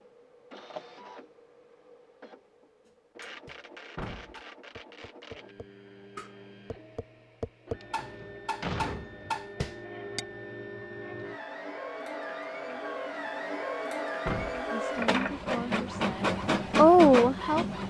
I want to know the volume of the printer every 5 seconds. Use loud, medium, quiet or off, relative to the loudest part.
quiet, quiet, medium, loud.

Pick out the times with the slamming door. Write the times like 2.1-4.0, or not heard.
4.0-4.4, 8.0-9.4, 14.2-14.7.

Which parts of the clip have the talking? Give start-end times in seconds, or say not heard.
14.7-17.8.